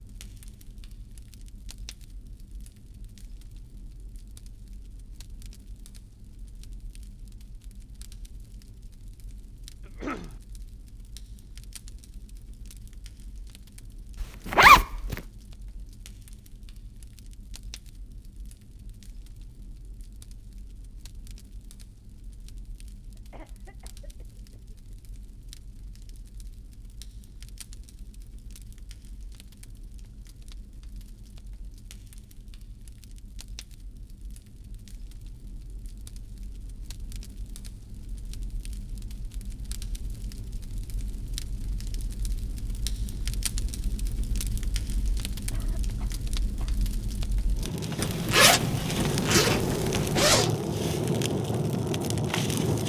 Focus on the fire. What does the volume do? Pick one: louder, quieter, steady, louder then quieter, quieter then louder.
louder.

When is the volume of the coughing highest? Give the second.
10 s.